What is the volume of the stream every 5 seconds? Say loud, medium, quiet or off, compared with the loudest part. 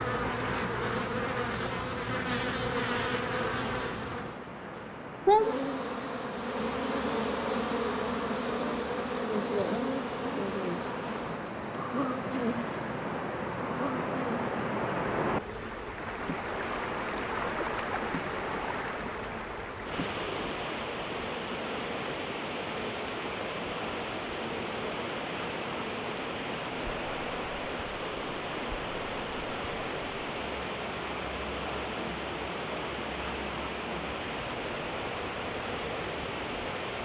medium, medium, loud, loud, loud, loud, loud, loud.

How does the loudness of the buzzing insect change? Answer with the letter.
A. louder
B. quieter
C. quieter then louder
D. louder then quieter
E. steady
B.